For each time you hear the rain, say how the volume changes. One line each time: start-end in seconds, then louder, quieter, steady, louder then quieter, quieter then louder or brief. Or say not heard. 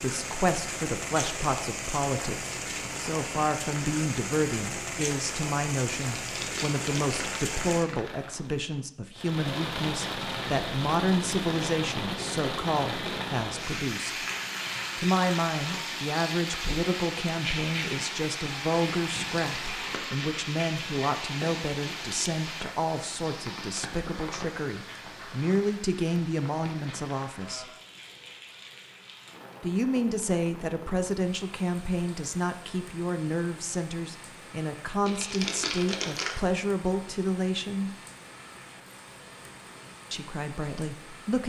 0.0-41.4 quieter.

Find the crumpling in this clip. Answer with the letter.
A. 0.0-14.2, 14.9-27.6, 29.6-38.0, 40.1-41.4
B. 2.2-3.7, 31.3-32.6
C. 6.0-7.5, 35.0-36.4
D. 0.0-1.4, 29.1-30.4
C.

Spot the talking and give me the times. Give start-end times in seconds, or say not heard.
0.0-14.2, 14.9-27.6, 29.6-38.0, 40.1-41.4.